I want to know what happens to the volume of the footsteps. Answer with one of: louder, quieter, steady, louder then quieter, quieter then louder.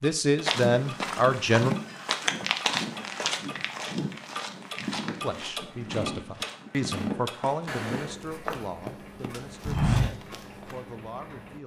quieter then louder.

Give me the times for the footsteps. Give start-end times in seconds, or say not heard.
0.5-10.8.